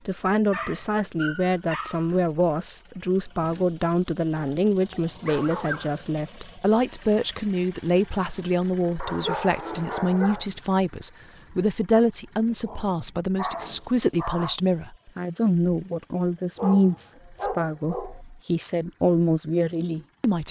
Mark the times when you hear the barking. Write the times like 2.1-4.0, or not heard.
0.5-2.1, 4.3-6.0, 9.0-10.4, 12.5-14.6, 16.6-18.2.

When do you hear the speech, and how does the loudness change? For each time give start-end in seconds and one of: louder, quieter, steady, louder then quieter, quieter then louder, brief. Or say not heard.
0.1-20.4 steady.